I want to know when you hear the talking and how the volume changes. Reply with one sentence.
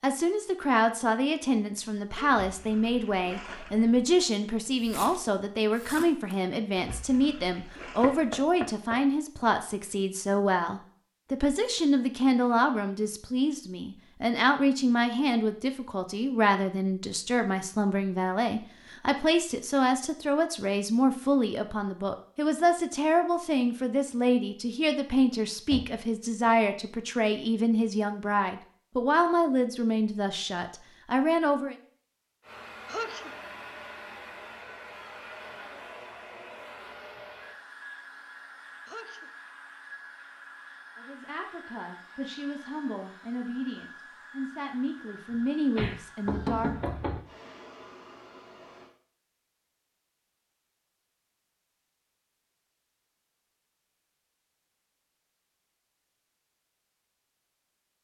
You can hear the talking from 0.0 to 31.8 s, at a steady volume; and from 41.0 to 46.8 s, getting louder.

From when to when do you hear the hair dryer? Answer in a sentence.
The hair dryer can be heard from 32.4 to 48.9 s.